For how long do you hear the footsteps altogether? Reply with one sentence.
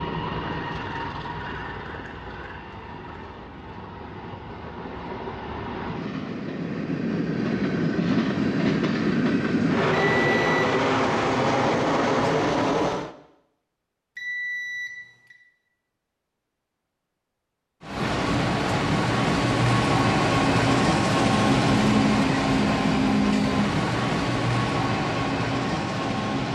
You can't hear the footsteps here.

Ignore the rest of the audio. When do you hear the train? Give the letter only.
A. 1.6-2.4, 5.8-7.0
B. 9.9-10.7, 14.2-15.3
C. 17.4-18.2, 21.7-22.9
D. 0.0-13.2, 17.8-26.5
D.